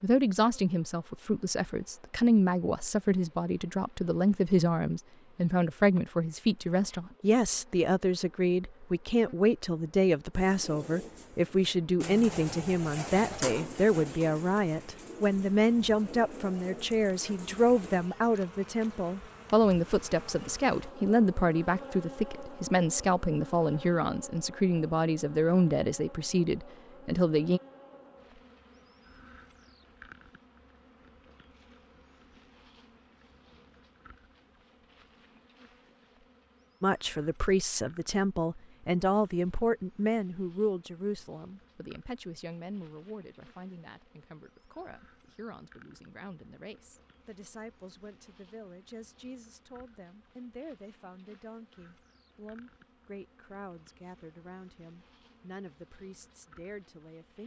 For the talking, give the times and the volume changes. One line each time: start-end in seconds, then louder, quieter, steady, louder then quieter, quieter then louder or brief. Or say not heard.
0.0-27.6 steady
36.8-57.4 quieter.